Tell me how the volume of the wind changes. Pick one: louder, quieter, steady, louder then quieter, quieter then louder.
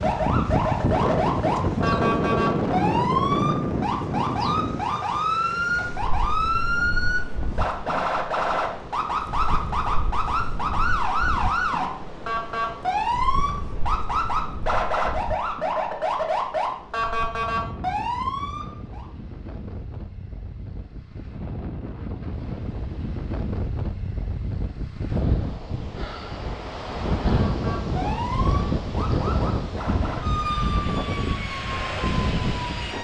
quieter then louder.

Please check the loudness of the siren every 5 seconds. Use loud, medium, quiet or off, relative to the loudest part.
loud, loud, loud, loud, off, medium, medium.